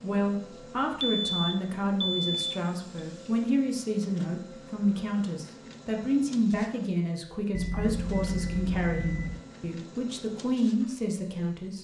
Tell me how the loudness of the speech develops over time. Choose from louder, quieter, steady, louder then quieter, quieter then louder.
steady.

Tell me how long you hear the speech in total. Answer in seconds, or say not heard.
12 s.